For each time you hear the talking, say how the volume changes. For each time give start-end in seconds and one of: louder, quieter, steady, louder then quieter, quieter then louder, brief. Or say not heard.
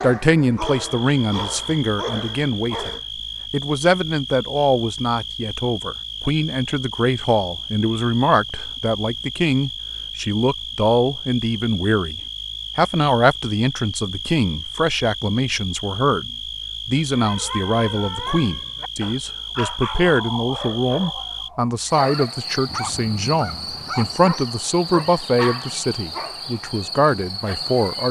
0.0-28.0 steady.